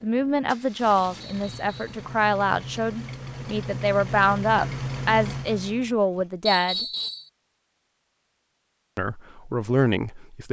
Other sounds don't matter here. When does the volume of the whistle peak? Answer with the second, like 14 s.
7 s.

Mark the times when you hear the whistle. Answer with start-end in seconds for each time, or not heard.
1.2-1.8, 6.5-7.3.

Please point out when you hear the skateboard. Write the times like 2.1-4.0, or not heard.
not heard.